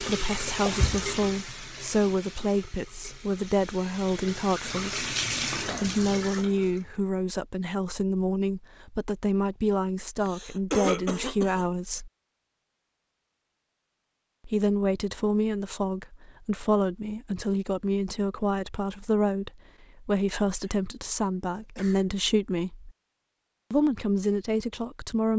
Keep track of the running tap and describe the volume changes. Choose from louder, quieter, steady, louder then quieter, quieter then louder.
quieter then louder.